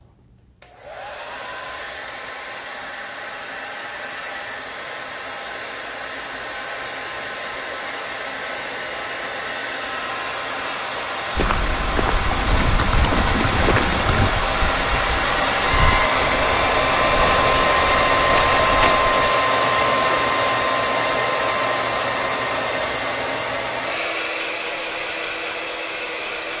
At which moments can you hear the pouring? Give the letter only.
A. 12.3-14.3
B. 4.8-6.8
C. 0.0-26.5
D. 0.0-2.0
A.